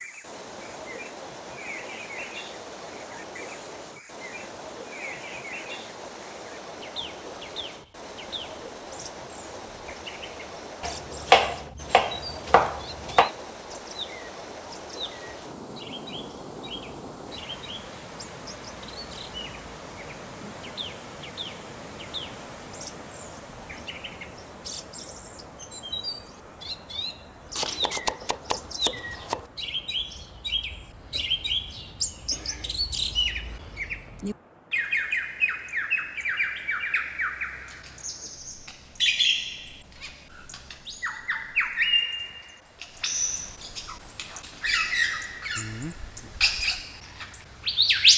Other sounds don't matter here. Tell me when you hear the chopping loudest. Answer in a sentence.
The volume of the chopping peaks at 11 seconds.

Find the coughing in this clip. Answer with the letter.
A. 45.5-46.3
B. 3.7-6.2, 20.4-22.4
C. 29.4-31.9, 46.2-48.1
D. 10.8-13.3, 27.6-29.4
A.